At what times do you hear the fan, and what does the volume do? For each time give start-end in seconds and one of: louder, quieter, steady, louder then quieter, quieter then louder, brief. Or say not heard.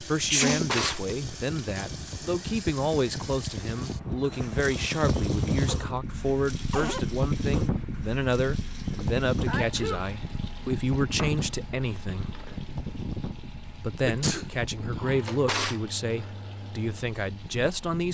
0.0-18.0 louder then quieter.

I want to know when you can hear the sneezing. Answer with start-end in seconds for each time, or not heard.
0.3-0.8, 8.9-10.1, 14.1-15.0.